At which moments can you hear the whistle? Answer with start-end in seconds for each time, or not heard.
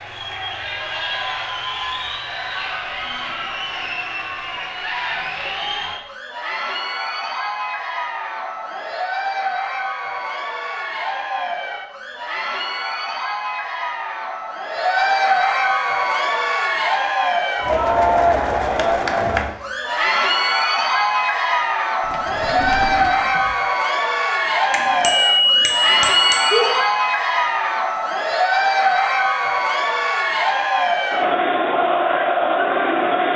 not heard.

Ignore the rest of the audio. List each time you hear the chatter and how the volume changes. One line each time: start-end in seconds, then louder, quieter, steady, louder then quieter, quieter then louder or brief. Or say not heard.
0.0-33.3 louder.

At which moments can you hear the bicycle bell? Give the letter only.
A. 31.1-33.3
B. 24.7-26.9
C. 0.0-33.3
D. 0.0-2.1
B.